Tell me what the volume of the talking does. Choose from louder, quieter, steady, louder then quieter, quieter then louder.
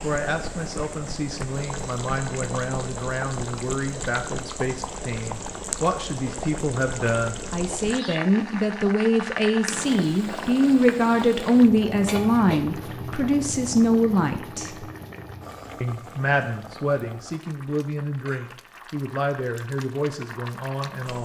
louder then quieter.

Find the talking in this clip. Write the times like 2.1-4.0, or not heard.
0.0-14.8, 15.8-21.2.